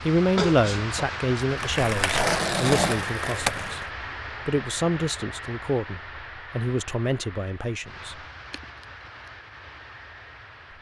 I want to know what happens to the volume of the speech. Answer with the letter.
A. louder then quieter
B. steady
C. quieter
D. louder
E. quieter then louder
C.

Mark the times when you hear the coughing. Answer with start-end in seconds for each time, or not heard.
0.3-1.0, 8.5-9.3.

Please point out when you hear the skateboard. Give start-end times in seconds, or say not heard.
1.4-3.9.